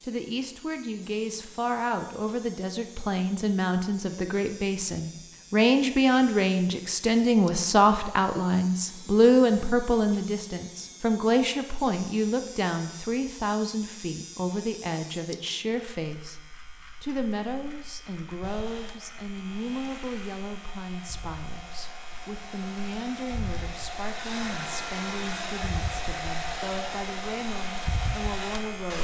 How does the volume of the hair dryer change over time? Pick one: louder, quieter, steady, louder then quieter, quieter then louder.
louder.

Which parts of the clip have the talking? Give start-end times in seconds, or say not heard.
0.0-28.9.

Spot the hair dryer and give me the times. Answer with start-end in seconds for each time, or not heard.
18.4-28.9.